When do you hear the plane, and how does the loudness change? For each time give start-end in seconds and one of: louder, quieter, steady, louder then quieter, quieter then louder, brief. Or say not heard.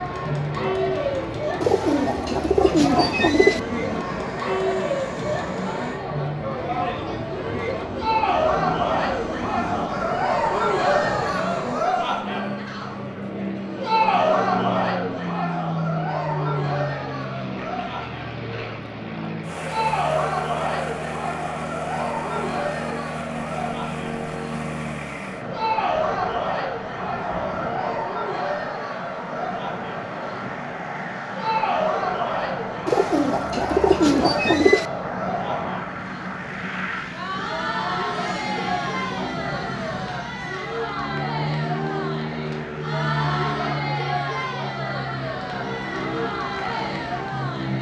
0.0-47.7 steady.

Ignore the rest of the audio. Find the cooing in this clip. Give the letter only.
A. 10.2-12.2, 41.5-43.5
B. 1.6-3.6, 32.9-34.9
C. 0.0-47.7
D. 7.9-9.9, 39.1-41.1
B.